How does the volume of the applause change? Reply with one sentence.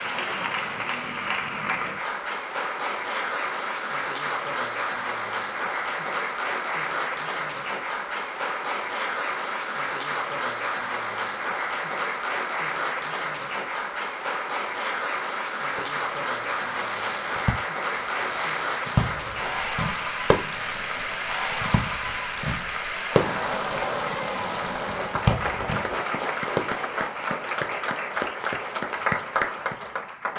The volume of the applause stays about the same.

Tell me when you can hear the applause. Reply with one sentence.
The applause can be heard from 0.0 to 30.3 s.